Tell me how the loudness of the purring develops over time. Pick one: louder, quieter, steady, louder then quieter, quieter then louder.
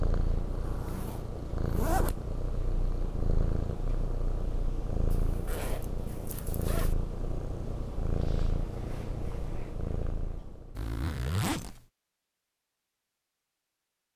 steady.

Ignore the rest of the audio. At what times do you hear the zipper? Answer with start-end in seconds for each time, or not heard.
0.5-2.1, 5.1-7.0, 10.8-11.8.